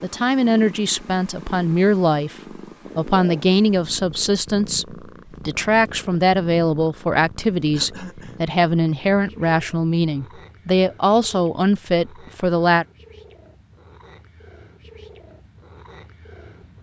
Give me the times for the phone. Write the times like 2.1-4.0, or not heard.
not heard.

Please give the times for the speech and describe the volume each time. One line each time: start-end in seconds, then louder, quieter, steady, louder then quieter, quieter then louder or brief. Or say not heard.
0.0-2.4 brief
3.0-12.8 steady.